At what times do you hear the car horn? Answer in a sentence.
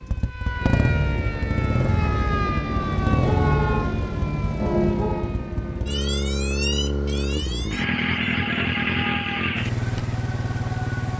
The car horn can be heard from 2.8 to 5.3 s.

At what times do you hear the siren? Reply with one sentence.
The siren can be heard from 0.0 to 11.1 s.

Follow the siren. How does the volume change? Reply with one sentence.
The loudness of the siren goes down.